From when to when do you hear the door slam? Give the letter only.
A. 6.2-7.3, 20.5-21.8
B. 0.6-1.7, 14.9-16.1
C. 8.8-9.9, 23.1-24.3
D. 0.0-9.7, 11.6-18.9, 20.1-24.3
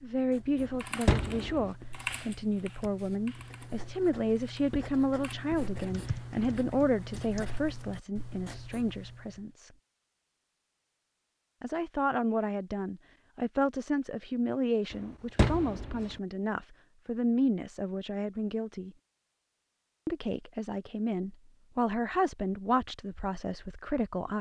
B.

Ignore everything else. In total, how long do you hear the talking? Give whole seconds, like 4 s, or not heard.
21 s.